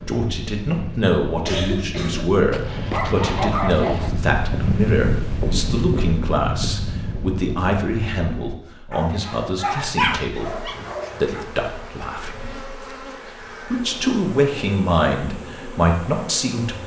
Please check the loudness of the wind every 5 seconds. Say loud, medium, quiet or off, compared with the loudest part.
loud, loud, off, off.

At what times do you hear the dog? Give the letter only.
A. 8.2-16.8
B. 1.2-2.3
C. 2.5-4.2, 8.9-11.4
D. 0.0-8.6
C.